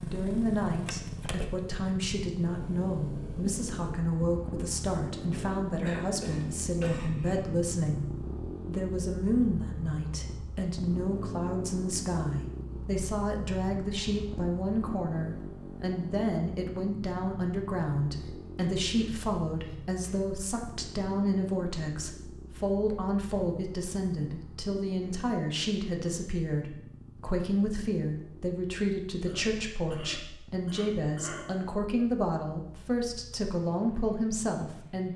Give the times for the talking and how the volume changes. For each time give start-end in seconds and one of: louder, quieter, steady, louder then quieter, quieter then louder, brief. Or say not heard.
0.0-8.1 steady
8.7-35.1 steady.